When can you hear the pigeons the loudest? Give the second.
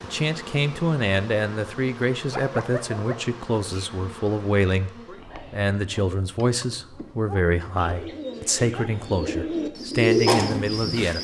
10 s.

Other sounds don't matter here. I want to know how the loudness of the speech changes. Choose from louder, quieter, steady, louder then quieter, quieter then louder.
steady.